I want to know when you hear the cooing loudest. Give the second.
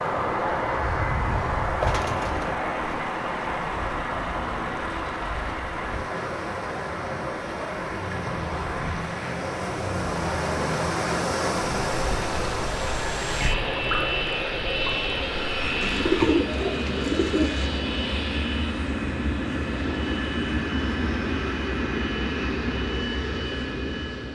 16 s.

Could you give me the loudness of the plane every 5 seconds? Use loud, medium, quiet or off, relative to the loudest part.
loud, medium, loud, loud, loud.